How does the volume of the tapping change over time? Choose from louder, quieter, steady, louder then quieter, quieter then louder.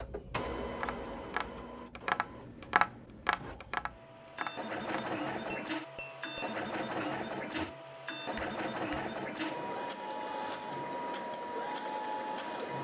quieter.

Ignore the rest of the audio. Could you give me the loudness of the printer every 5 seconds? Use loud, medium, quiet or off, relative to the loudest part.
medium, loud, loud.